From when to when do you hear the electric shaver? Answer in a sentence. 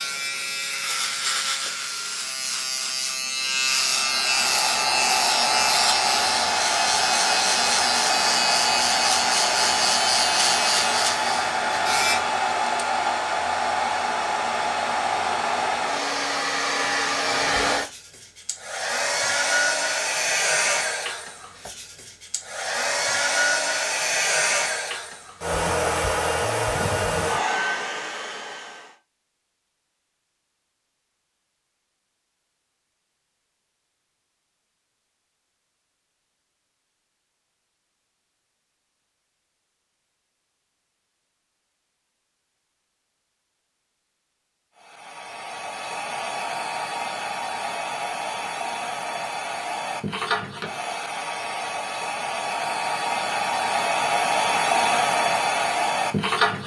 You can hear the electric shaver from 0.0 to 12.2 s.